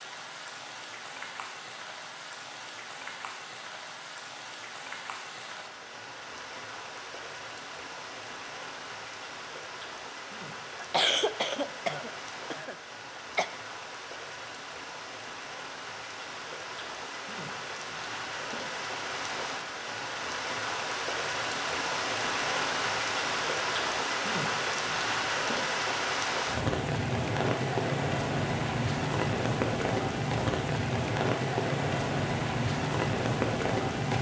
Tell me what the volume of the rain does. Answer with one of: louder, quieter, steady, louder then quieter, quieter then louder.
louder.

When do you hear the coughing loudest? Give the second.
11 s.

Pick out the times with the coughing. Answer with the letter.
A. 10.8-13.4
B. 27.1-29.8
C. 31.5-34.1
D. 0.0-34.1
A.